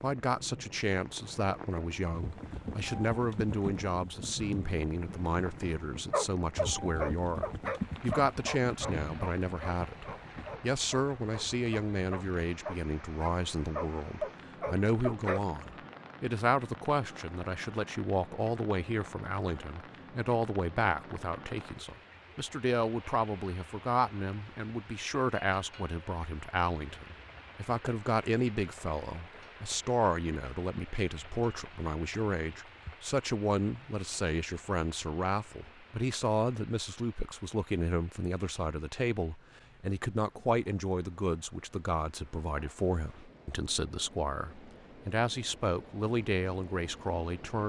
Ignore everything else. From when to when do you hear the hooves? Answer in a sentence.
You can hear the hooves from 2.1 to 10.6 s.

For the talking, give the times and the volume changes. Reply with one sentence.
You can hear the talking from 0.0 to 47.6 s, at a steady volume.